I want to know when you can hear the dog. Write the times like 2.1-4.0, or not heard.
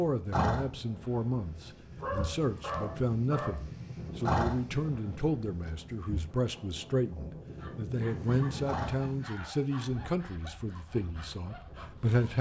1.9-3.5, 7.5-8.6, 9.2-10.1.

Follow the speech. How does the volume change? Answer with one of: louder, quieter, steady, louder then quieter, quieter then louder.
steady.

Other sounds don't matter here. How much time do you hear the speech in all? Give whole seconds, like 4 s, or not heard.
12 s.